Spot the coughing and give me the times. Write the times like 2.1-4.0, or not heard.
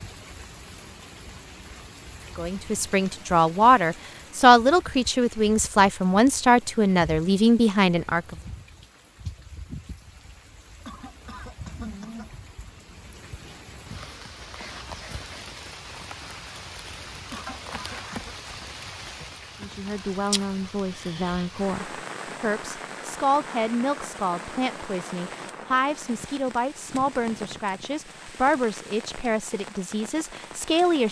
10.8-12.2, 17.3-18.4.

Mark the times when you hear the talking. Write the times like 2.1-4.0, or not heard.
2.4-8.3, 19.6-31.0.